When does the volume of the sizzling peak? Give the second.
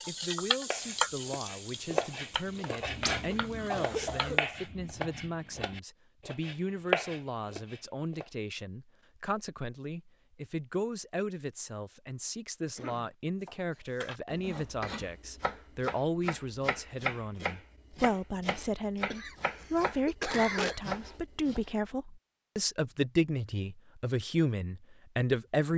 1 s.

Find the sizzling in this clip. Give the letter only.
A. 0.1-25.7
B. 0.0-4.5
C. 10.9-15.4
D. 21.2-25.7
B.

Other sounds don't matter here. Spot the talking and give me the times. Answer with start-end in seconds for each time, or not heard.
0.1-25.7.